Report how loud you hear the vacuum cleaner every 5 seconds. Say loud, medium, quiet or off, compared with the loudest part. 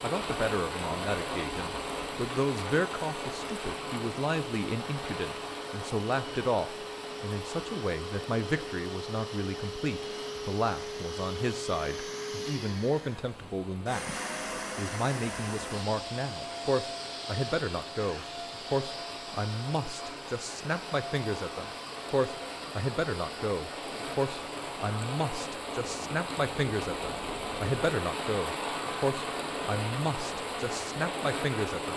medium, loud, loud, loud, medium, off, off.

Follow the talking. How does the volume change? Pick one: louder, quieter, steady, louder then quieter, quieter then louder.
steady.